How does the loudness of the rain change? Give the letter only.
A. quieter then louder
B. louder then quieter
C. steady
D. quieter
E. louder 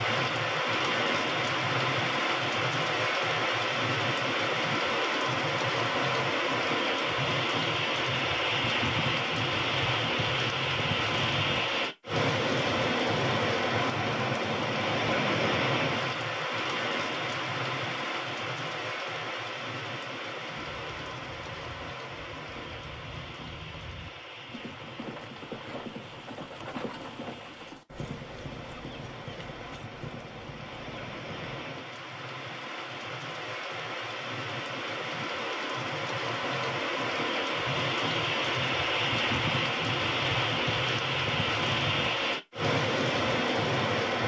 A.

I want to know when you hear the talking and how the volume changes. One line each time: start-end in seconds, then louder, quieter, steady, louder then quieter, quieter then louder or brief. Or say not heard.
not heard.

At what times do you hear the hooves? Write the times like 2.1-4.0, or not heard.
20.6-31.6.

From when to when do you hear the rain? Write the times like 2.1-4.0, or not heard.
0.0-44.2.